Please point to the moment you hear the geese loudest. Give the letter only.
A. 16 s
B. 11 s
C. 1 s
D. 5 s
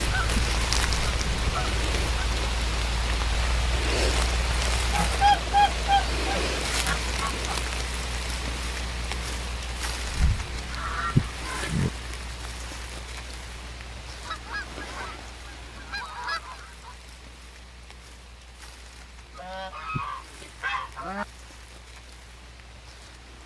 D.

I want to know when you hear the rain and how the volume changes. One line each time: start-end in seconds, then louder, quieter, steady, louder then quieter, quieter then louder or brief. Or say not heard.
0.0-23.4 quieter.